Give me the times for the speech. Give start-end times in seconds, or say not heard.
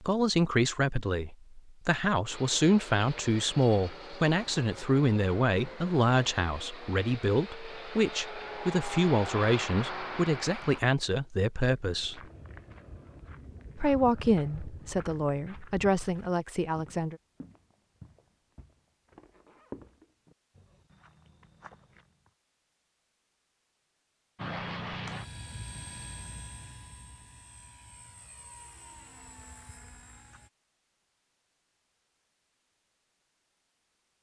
0.0-12.2, 13.8-17.1.